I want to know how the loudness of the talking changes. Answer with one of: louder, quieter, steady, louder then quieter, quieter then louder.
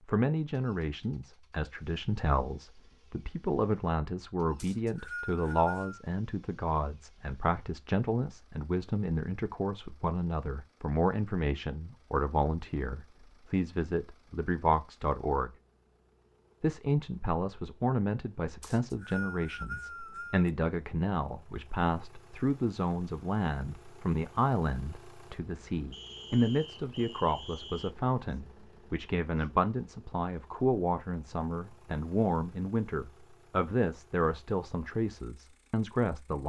steady.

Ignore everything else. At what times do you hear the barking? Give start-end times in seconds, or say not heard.
not heard.